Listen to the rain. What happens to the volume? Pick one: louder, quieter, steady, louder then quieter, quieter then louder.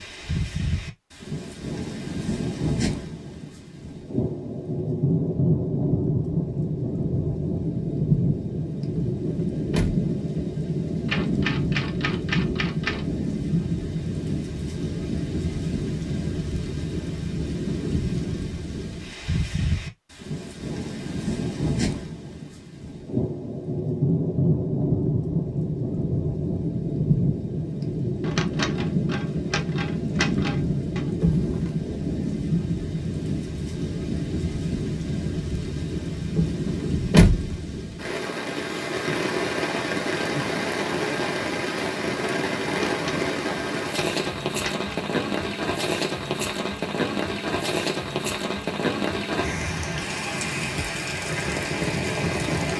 steady.